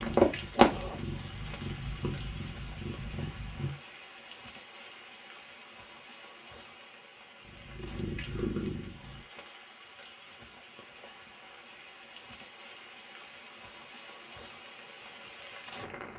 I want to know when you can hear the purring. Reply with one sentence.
The purring can be heard from 0.0 to 3.7 s and from 7.4 to 9.2 s.